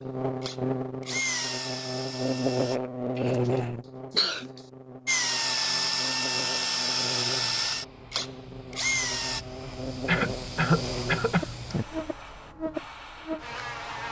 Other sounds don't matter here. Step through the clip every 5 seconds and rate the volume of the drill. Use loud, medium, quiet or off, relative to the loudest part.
medium, loud, off.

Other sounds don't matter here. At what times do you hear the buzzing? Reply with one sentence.
The buzzing can be heard from 0.0 to 14.0 s.